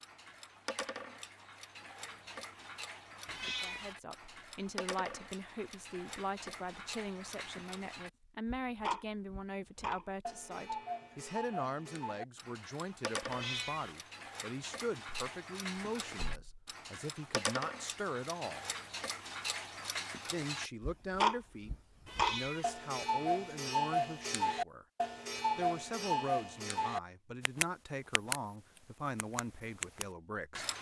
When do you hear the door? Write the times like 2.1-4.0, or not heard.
16.1-16.6.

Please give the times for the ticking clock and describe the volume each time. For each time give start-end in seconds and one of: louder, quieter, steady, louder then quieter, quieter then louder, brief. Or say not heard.
0.0-30.7 louder.